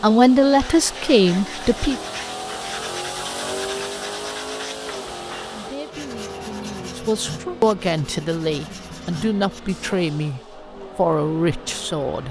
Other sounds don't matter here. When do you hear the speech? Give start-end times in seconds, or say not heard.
0.0-1.9, 5.5-12.2.